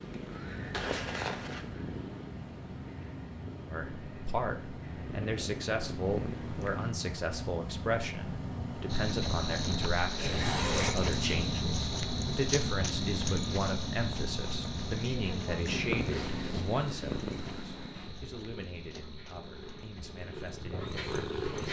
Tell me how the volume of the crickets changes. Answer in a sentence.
The volume of the crickets goes down.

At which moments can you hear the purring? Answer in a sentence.
The purring can be heard from 0.0 to 7.0 s and from 15.7 to 21.6 s.